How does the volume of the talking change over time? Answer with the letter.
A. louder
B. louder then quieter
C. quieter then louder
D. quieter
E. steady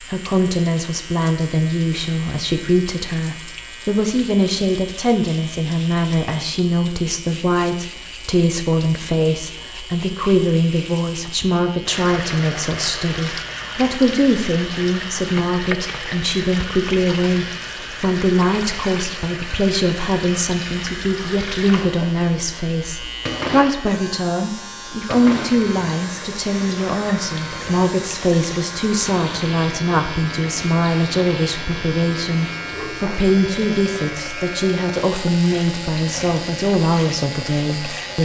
E.